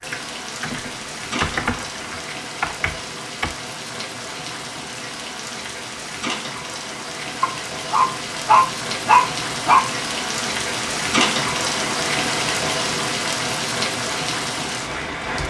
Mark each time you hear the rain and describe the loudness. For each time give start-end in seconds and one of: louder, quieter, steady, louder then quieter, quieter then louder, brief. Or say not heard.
0.0-15.4 louder.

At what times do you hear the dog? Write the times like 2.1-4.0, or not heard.
7.4-9.9.